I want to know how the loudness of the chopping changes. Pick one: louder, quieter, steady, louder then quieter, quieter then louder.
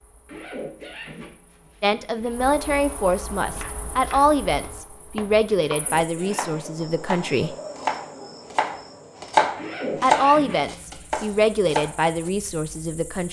louder then quieter.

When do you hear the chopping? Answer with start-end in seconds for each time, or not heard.
3.4-12.3.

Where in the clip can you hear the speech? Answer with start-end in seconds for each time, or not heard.
1.8-7.5, 10.0-13.2.